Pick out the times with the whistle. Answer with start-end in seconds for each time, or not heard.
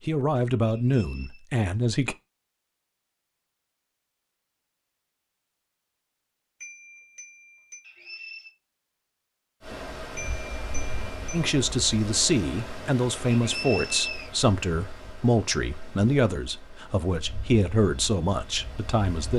0.7-1.4, 7.8-8.6, 13.3-14.3.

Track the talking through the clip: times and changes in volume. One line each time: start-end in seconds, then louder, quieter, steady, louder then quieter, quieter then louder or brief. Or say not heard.
0.1-2.1 brief
11.3-19.3 steady.